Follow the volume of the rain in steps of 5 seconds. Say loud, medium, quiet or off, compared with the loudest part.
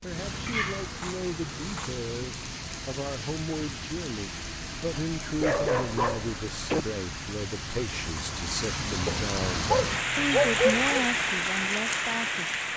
medium, medium, loud.